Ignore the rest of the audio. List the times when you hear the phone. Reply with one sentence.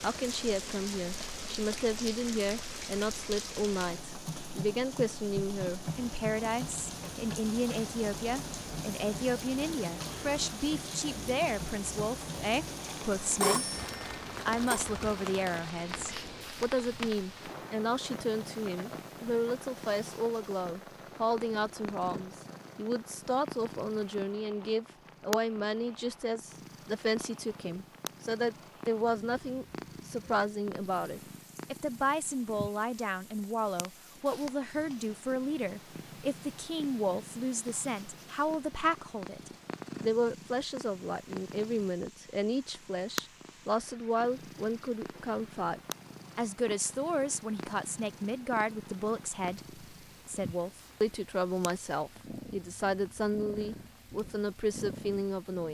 The phone can be heard from 13.4 to 14.8 s.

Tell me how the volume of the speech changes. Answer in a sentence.
The volume of the speech stays about the same.